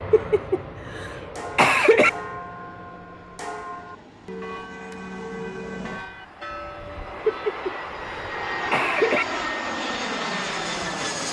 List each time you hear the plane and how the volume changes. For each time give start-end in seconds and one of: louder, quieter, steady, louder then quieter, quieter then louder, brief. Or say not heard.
0.0-11.2 quieter then louder.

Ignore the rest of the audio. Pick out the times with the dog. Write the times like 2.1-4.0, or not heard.
not heard.